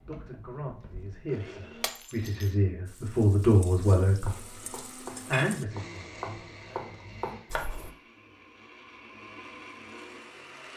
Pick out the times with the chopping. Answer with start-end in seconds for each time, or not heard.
4.2-7.9.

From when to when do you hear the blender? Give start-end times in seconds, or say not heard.
0.0-1.9, 4.2-10.7.